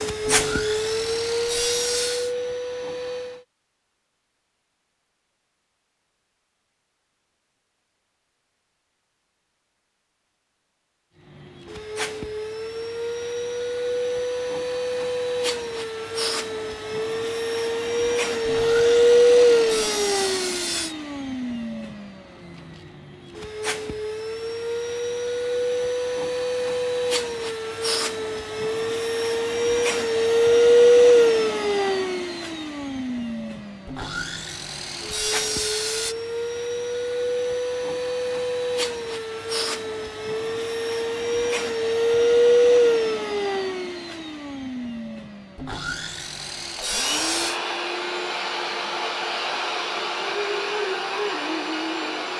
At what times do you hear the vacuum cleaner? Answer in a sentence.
The vacuum cleaner can be heard from 0.0 to 3.4 s and from 11.7 to 52.3 s.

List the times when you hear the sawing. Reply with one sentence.
The sawing can be heard from 0.2 to 2.4 s, from 18.4 to 20.9 s, from 33.9 to 36.1 s and from 45.5 to 47.6 s.